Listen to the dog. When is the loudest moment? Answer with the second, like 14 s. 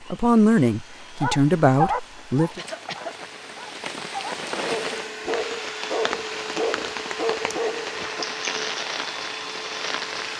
2 s.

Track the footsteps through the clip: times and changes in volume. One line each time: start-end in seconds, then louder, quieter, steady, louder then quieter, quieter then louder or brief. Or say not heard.
not heard.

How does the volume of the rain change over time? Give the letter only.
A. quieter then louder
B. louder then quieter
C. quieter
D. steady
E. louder
E.